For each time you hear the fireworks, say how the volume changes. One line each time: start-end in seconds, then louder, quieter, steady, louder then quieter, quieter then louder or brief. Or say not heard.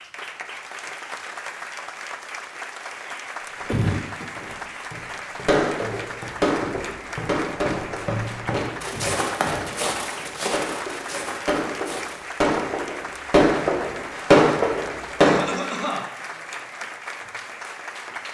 5.5-15.6 quieter then louder.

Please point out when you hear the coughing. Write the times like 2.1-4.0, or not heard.
3.6-4.2, 8.9-9.8, 15.2-16.1.